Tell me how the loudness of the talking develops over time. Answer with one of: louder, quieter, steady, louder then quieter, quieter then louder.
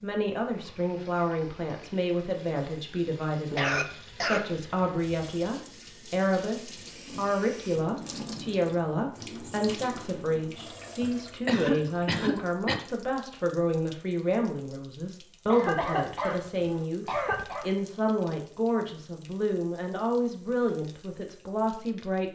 steady.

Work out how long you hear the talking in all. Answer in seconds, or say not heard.
22 s.